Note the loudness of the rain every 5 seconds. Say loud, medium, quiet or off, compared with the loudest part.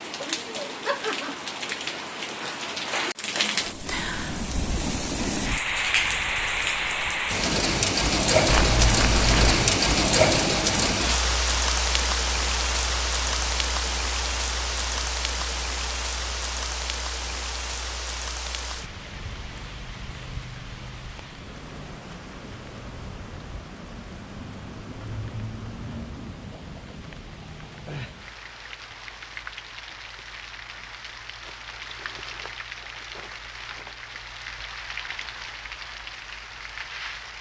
medium, loud, loud, medium, quiet, quiet, quiet, quiet.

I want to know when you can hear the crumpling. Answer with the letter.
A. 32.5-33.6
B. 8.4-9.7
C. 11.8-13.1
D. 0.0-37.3
B.